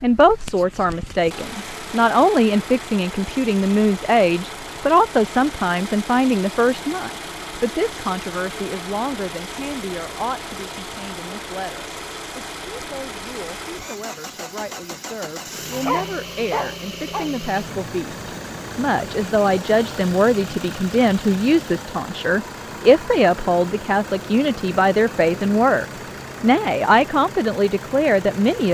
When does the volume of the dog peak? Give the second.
16 s.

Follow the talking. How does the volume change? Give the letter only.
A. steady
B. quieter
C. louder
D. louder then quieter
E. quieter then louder
E.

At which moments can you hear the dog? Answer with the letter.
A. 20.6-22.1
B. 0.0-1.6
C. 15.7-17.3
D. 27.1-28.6
C.